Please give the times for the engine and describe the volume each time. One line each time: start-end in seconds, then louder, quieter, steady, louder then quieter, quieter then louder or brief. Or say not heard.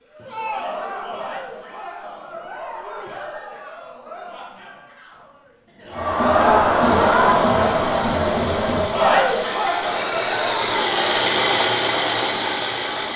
6.8-13.1 louder.